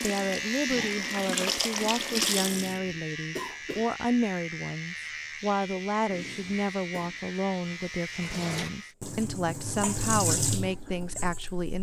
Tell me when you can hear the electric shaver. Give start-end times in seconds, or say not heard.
0.0-8.9.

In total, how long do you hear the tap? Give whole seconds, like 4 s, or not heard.
6 s.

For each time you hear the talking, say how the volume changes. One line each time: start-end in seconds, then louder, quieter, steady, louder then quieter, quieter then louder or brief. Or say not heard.
0.0-11.7 steady.